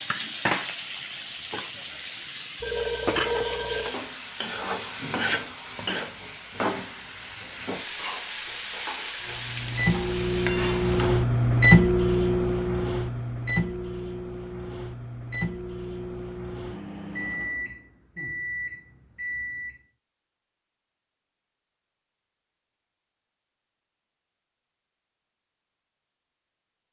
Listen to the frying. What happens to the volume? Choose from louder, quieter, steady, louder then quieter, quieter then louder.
steady.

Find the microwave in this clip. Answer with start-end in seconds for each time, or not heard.
9.2-19.8.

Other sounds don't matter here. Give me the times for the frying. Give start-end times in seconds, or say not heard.
0.0-11.2.